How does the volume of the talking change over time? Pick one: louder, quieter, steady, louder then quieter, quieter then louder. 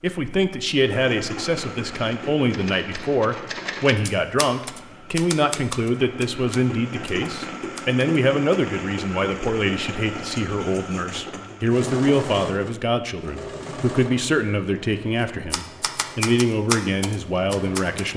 steady.